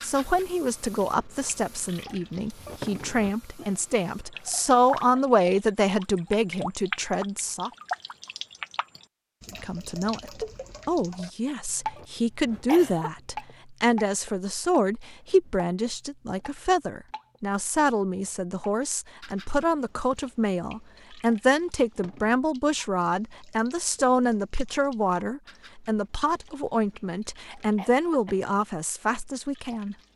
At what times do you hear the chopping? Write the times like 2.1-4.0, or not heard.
not heard.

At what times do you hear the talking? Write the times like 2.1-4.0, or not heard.
0.0-7.7, 9.6-29.9.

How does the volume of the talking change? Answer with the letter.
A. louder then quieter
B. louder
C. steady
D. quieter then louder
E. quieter
C.